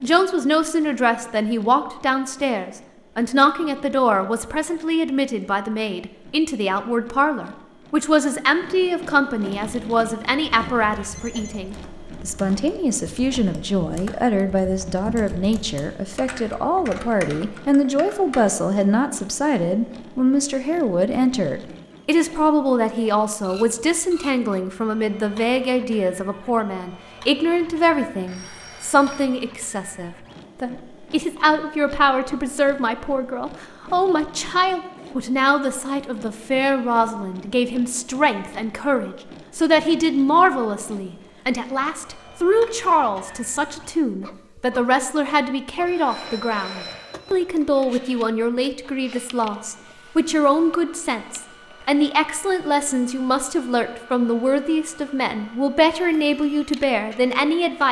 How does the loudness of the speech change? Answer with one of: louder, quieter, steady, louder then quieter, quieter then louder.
steady.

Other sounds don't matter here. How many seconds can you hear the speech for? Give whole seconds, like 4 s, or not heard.
58 s.